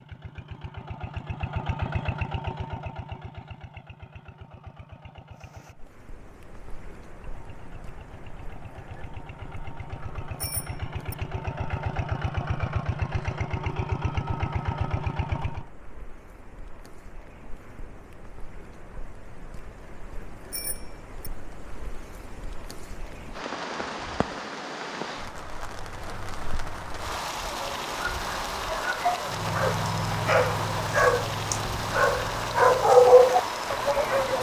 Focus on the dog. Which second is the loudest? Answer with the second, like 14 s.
33 s.